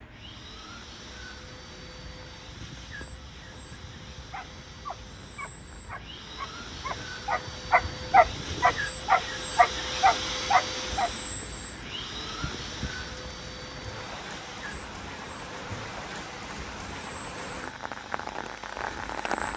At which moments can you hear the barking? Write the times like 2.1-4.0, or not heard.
4.2-11.1.